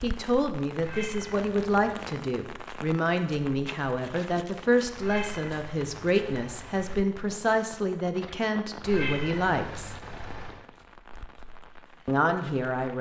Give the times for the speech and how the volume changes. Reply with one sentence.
The speech can be heard from 0.0 to 9.9 s, at a steady volume; and briefly from 12.1 to 12.9 s.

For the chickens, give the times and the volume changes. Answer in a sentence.
You can't hear the chickens here.